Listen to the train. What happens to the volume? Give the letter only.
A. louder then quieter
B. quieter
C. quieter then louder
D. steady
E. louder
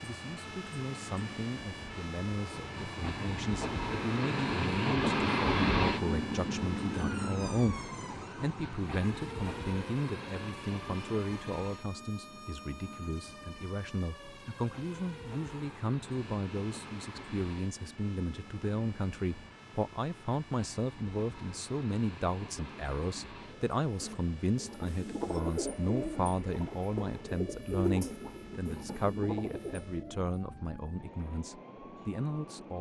B.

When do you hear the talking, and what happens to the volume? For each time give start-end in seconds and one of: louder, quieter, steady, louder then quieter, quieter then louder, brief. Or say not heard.
0.0-32.7 steady.